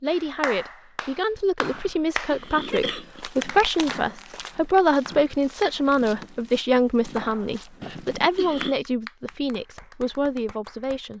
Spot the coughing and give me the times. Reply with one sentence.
The coughing can be heard from 1.7 to 3.3 s and from 7.8 to 8.8 s.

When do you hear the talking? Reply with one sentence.
The talking can be heard from 0.0 to 11.1 s.